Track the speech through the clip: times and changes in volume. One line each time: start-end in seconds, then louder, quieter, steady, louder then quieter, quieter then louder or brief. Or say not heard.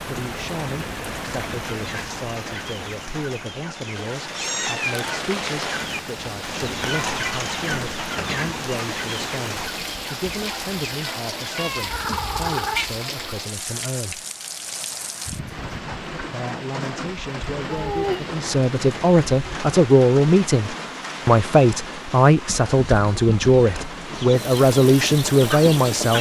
0.0-14.2 steady
16.2-26.1 louder.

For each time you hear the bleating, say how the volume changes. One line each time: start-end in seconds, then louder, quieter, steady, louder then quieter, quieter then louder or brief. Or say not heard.
not heard.